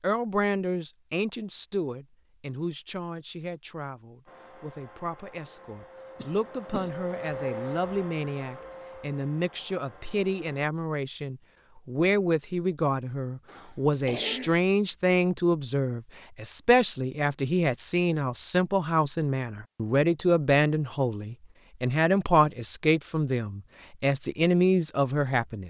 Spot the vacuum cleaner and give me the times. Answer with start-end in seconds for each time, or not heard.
4.2-10.7.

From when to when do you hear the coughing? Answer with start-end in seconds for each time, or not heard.
6.2-7.2, 13.4-14.6.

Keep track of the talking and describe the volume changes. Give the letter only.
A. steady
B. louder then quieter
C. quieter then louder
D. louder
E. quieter
D.